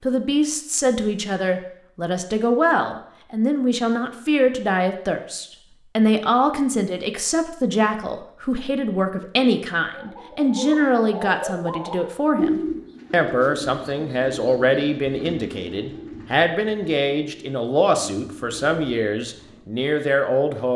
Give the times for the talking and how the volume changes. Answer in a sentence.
The talking can be heard from 0.0 to 20.7 s, at a steady volume.